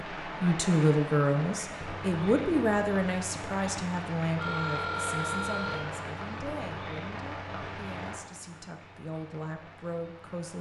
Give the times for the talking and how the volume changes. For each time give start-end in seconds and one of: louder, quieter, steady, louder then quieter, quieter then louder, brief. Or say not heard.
0.0-10.5 quieter.